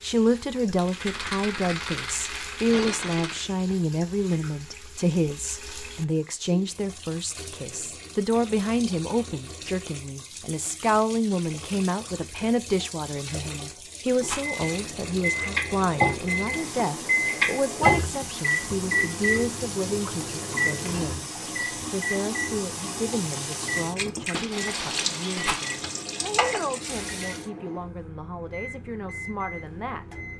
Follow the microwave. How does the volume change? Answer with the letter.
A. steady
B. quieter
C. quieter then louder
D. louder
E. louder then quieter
B.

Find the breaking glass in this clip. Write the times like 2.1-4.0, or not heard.
2.6-3.5, 24.3-25.9.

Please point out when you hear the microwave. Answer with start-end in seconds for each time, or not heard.
14.2-30.3.